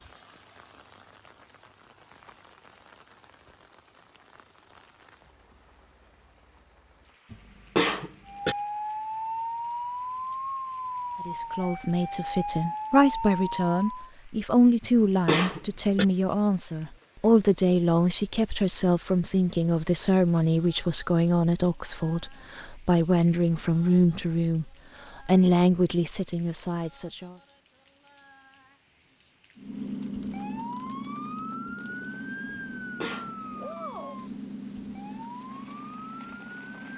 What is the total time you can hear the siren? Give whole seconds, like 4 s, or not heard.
13 s.